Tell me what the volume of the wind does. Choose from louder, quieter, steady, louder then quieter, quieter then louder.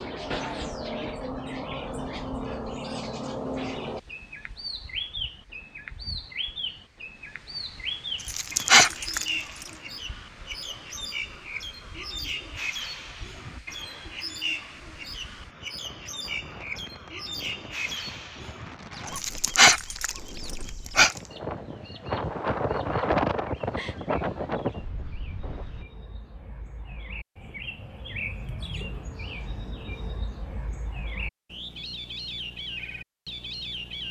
louder.